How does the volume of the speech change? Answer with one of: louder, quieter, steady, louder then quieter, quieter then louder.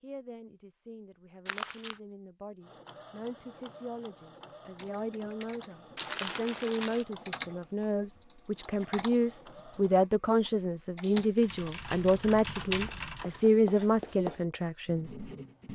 louder.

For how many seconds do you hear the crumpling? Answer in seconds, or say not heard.
3 s.